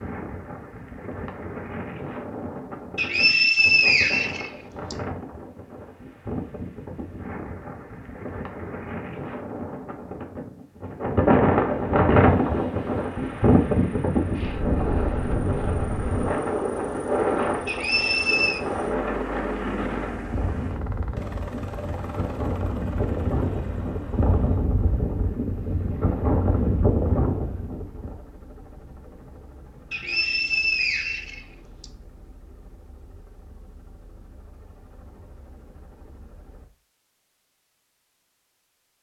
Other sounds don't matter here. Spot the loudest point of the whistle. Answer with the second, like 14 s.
4 s.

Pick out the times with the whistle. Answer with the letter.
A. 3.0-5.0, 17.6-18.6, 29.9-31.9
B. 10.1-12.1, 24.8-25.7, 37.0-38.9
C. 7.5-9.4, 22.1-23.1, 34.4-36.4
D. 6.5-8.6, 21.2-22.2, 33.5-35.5
A.